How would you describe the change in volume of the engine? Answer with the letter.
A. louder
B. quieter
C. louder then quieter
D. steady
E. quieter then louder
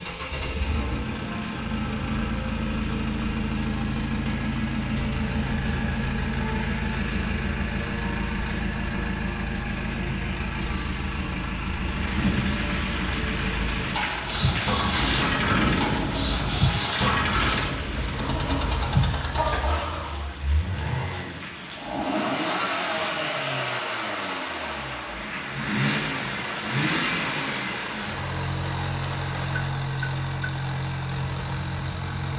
D.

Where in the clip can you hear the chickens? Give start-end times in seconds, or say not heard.
14.2-20.4.